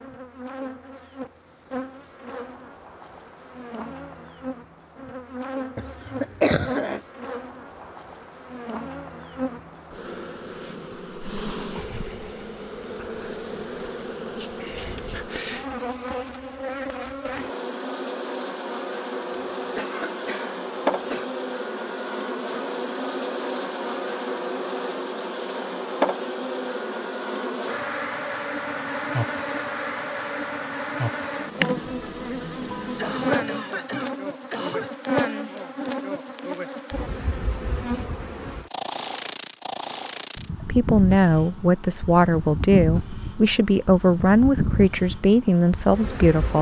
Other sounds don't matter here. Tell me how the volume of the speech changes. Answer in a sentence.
The volume of the speech stays about the same.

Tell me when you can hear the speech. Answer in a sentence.
You can hear the speech from 40.6 to 46.5 s.